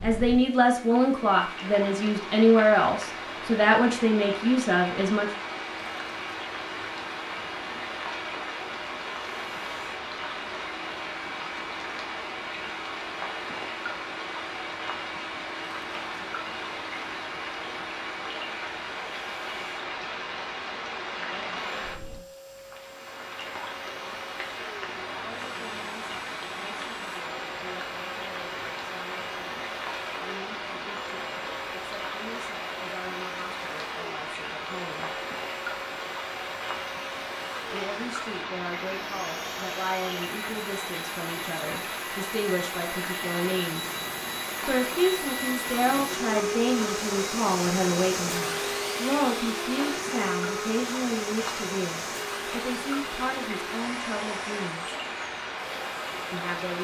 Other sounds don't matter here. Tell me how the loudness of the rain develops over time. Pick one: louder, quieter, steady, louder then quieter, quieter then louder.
steady.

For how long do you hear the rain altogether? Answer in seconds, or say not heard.
57 s.